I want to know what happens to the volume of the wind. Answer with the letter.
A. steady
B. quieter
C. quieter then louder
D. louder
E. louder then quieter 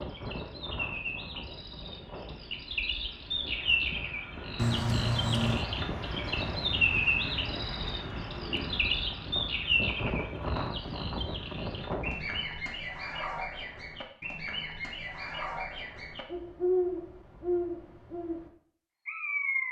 D.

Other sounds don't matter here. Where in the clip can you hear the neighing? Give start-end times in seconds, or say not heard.
4.5-5.7.